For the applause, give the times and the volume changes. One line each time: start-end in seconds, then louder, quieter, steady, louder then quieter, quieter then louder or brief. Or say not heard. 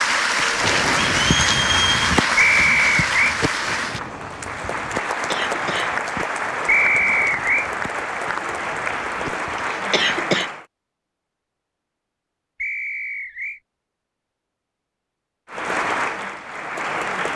0.0-10.7 quieter
15.5-17.3 brief.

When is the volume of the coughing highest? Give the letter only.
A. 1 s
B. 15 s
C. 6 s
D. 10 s
D.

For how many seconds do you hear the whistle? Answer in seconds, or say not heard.
3 s.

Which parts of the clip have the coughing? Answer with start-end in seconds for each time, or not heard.
5.1-6.0, 9.7-10.5.